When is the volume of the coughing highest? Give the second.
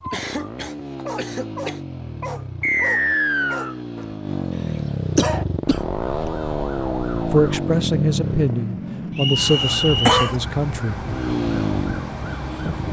10 s.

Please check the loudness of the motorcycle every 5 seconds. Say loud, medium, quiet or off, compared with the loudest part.
medium, loud, loud.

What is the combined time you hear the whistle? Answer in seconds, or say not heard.
2 s.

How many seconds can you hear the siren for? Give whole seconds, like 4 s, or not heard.
7 s.